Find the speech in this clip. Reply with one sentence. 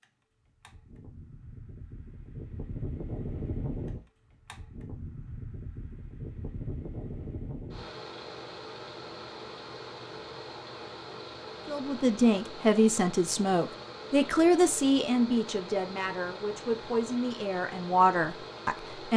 The speech can be heard from 11.7 to 19.1 s.